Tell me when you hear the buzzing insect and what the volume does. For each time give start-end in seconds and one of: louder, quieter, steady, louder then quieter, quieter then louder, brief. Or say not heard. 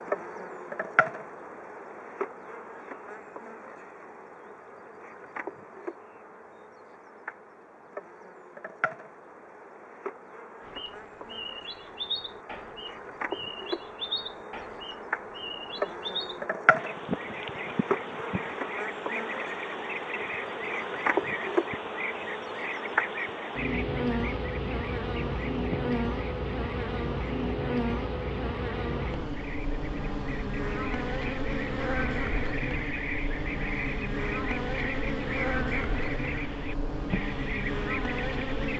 0.0-38.7 louder.